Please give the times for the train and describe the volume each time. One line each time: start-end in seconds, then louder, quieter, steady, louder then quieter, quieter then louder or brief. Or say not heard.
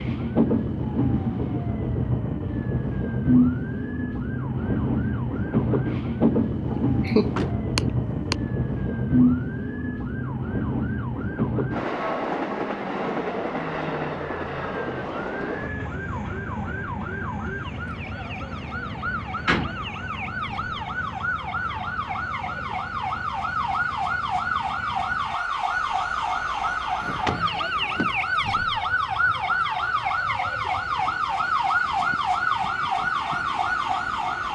0.0-34.5 quieter.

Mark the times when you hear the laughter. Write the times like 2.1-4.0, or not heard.
6.8-8.3.